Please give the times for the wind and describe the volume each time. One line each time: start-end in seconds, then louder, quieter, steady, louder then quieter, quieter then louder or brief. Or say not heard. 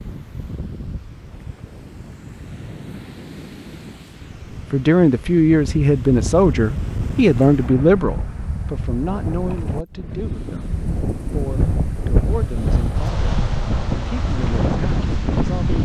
0.0-15.8 louder.